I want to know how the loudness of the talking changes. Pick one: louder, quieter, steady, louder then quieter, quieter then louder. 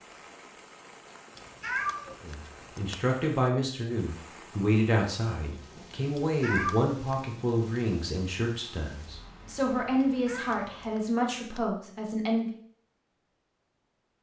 steady.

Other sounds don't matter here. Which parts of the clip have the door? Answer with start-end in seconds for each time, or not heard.
not heard.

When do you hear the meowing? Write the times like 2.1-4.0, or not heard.
1.4-3.0, 6.2-7.2, 10.1-11.7.